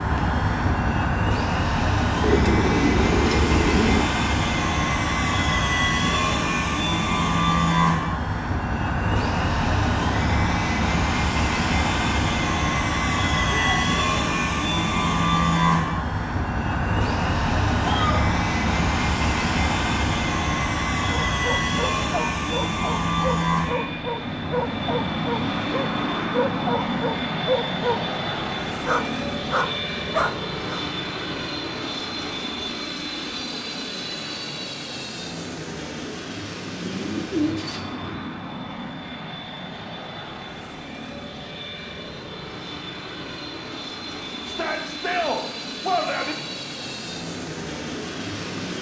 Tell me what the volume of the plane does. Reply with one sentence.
The loudness of the plane goes down.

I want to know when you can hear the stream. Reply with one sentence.
The stream can't be heard in this clip.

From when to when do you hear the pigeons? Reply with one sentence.
The pigeons can be heard from 2.2 to 4.1 s and from 36.8 to 38.4 s.